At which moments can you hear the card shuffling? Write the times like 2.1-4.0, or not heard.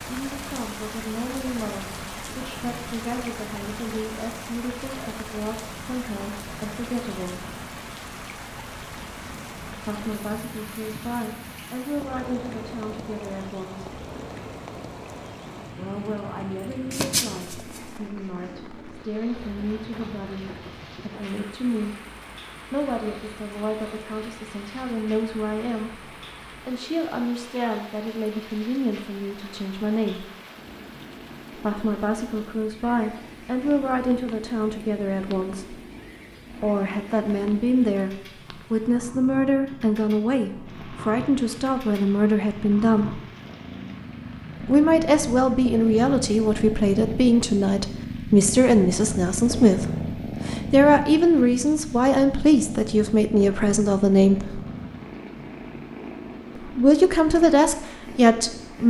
16.9-17.9.